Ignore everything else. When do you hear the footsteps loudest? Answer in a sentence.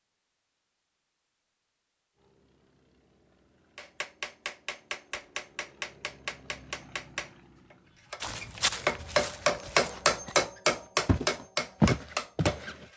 The volume of the footsteps peaks at 12 seconds.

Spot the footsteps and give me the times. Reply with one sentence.
The footsteps can be heard from 8.2 to 10.4 s and from 11.1 to 12.8 s.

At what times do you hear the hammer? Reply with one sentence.
The hammer can be heard from 3.8 to 12.9 s.